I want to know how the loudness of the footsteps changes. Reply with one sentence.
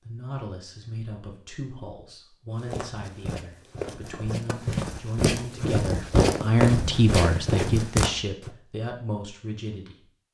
The loudness of the footsteps goes up.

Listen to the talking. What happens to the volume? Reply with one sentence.
The loudness of the talking goes up, then down.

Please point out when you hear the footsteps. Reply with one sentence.
The footsteps can be heard from 2.5 to 8.5 s.